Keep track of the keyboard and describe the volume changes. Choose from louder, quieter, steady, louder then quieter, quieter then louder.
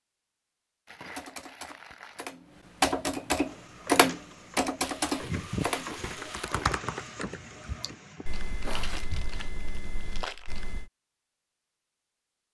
quieter.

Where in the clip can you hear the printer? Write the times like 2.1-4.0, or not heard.
3.5-9.0.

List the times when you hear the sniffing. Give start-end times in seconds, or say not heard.
8.2-8.9.